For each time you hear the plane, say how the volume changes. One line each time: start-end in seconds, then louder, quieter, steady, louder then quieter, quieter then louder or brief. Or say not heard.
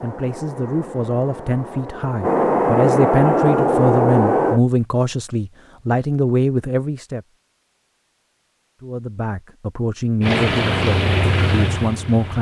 0.0-4.6 louder
10.2-12.3 brief.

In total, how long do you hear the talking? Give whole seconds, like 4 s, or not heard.
11 s.